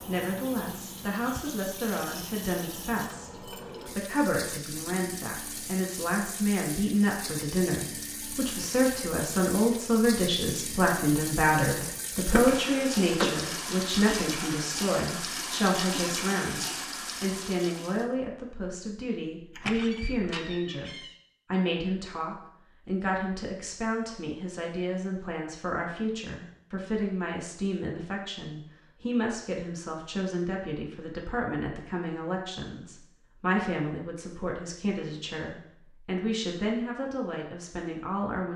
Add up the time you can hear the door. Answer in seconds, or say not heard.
3 s.